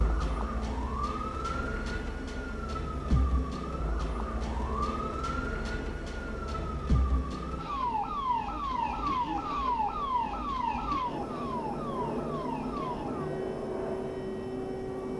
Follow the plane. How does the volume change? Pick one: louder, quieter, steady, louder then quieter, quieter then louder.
louder.